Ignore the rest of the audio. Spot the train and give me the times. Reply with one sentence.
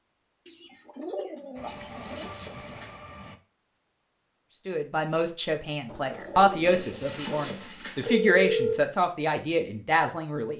The train can be heard from 1.6 to 3.4 s.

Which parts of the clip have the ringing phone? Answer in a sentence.
The ringing phone can be heard from 1.6 to 3.0 s and from 6.7 to 8.8 s.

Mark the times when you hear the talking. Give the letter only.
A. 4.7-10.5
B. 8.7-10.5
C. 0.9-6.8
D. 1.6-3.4
A.